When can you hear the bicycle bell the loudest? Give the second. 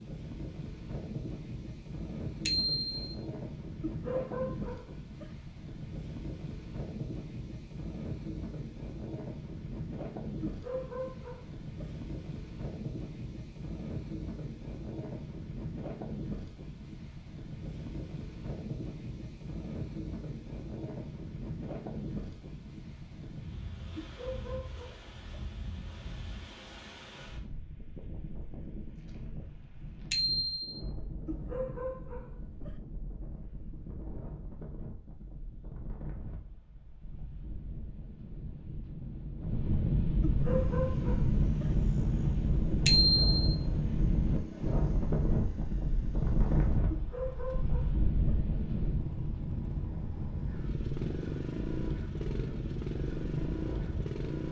43 s.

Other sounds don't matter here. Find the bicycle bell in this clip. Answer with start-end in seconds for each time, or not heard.
2.5-2.9, 30.1-30.8, 42.9-43.5.